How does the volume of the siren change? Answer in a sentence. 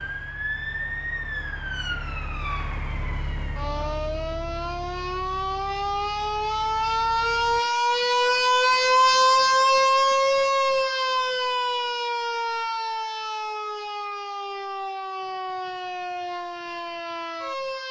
The volume of the siren goes up, then down.